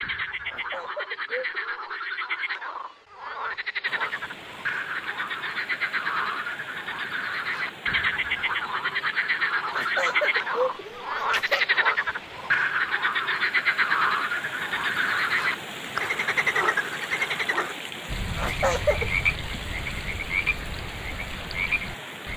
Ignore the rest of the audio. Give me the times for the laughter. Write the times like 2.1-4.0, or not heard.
0.5-1.9, 9.7-11.7, 18.4-19.1.